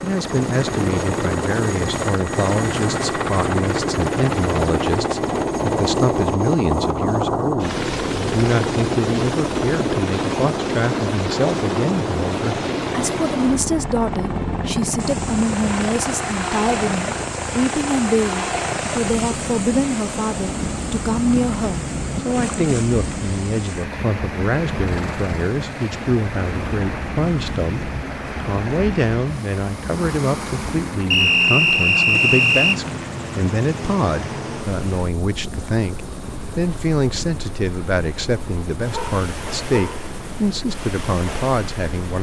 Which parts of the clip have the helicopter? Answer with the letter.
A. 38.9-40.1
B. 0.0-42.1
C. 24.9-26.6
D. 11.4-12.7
B.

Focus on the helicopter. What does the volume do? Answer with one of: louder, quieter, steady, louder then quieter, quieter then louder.
quieter.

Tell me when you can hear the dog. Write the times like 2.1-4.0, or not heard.
38.9-40.1.